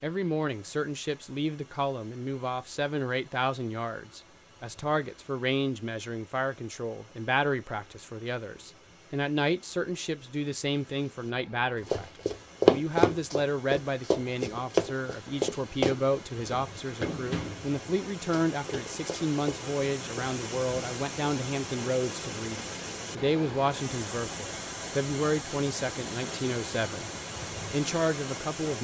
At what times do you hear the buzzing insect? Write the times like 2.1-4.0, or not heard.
not heard.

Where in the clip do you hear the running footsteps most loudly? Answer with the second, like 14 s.
13 s.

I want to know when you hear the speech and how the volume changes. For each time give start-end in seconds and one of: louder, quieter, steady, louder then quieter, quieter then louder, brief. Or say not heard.
0.0-27.1 steady
27.7-28.7 brief.